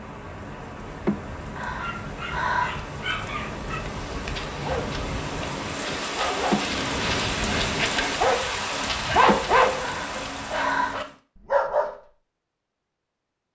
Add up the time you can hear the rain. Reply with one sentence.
You can hear the rain for 11 seconds altogether.